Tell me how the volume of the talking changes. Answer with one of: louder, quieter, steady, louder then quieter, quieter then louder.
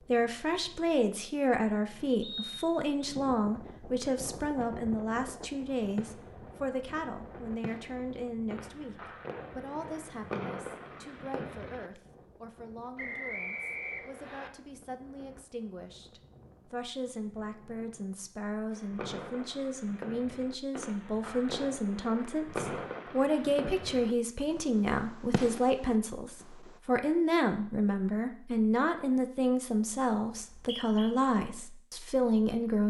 quieter then louder.